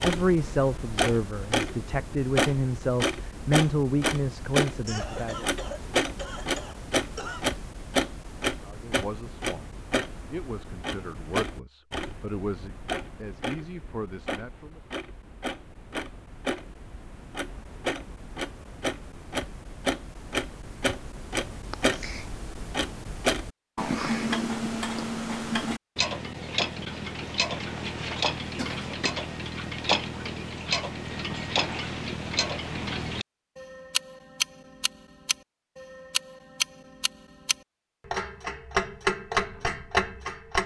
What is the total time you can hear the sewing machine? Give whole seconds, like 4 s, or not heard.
not heard.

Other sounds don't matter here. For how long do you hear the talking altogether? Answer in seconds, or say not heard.
11 s.